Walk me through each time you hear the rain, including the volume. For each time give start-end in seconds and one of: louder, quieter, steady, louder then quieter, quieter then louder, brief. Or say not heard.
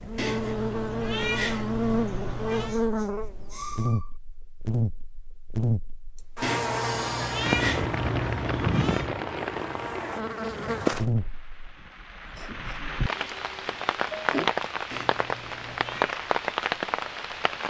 7.3-17.6 quieter then louder.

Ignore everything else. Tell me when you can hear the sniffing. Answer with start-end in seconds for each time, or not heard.
2.0-4.1, 6.2-7.6, 12.3-14.5.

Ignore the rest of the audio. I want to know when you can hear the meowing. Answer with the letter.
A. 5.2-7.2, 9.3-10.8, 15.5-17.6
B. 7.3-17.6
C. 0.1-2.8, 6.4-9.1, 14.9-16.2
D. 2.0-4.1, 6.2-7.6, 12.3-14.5
C.